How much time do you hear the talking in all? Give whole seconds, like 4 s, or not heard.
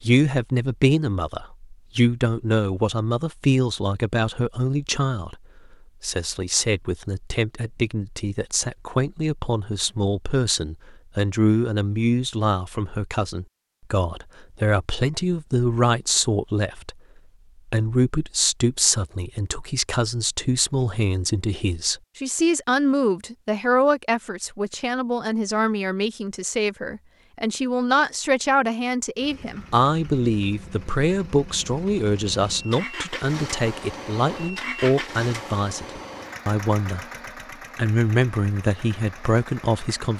38 s.